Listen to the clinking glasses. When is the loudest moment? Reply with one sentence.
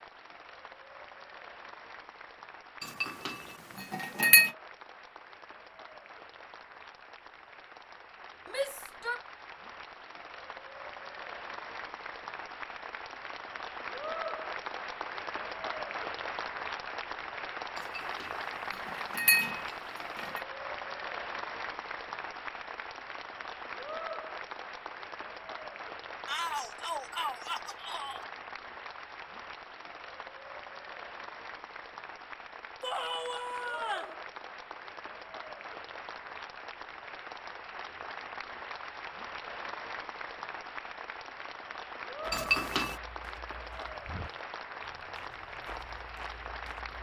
The loudest moment of the clinking glasses is at 4 seconds.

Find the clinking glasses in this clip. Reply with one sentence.
The clinking glasses can be heard from 2.8 to 4.5 s, from 17.8 to 18.2 s, from 18.9 to 20.4 s and from 42.3 to 43.0 s.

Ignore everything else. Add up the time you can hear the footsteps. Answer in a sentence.
You can hear the footsteps for 5 seconds altogether.